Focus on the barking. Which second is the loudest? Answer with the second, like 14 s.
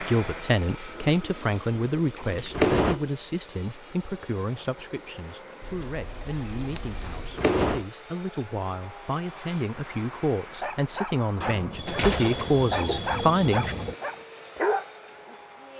15 s.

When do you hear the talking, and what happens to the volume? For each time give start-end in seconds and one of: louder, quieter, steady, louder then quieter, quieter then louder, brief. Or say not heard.
0.0-13.8 quieter then louder.